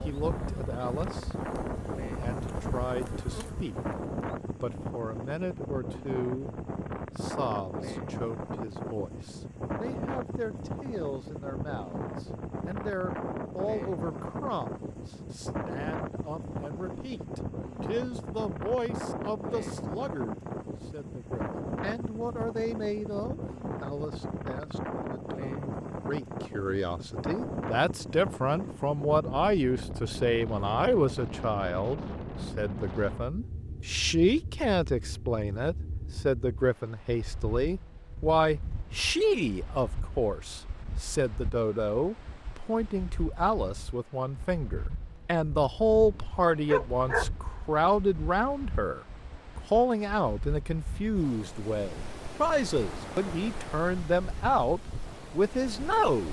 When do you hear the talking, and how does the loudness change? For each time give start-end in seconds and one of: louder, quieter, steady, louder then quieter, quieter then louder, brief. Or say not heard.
0.0-1.4 brief
2.2-56.2 louder.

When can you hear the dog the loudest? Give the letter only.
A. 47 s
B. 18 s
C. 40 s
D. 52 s
A.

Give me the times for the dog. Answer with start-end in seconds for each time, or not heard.
45.9-47.9.